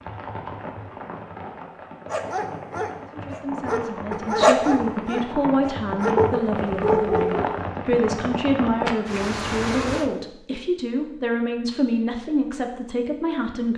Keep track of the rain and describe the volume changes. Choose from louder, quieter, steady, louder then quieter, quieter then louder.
louder.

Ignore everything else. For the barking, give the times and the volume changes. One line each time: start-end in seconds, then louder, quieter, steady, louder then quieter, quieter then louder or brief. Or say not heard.
2.1-7.7 louder.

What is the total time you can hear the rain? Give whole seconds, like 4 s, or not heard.
10 s.